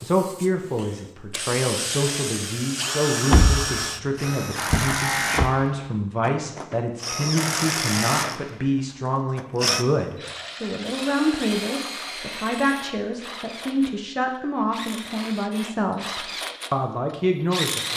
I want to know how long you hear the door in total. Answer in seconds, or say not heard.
2 s.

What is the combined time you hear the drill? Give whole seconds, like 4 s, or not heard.
18 s.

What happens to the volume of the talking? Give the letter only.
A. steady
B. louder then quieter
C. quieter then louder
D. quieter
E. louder
A.